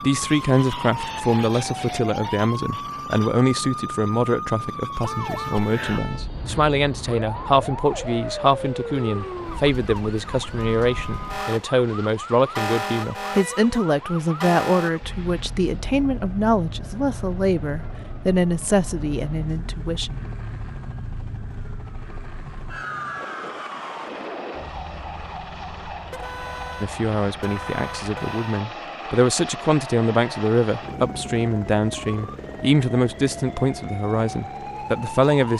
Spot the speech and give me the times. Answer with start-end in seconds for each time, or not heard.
0.0-20.2, 26.8-35.5.